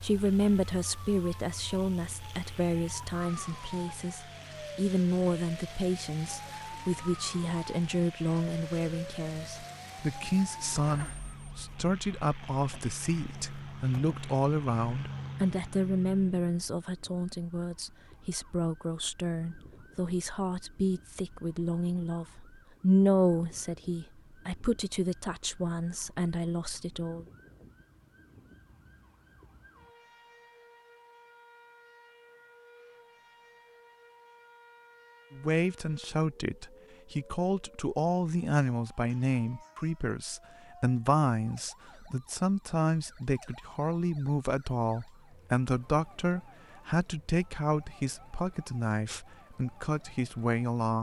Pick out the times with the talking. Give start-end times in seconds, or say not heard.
0.0-27.2, 35.3-50.9.